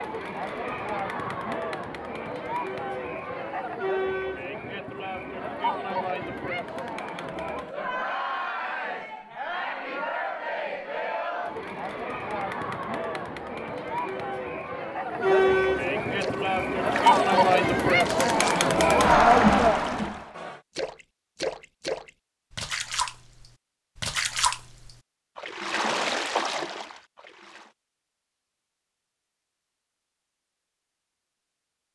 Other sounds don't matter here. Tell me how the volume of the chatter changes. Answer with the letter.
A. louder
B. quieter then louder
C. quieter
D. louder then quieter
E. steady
A.